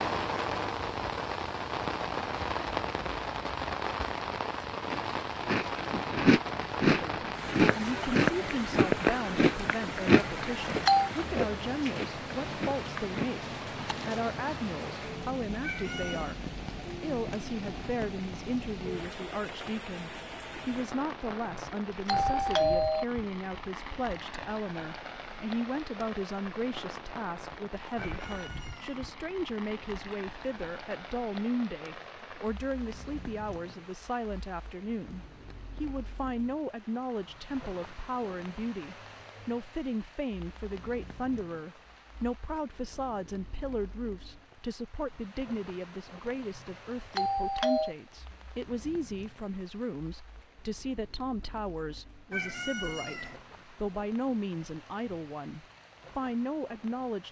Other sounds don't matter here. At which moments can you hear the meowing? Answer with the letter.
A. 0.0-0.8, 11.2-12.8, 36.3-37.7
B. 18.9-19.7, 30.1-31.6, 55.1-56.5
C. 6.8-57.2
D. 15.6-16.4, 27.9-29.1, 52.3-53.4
D.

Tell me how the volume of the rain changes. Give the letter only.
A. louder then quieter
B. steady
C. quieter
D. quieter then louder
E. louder
C.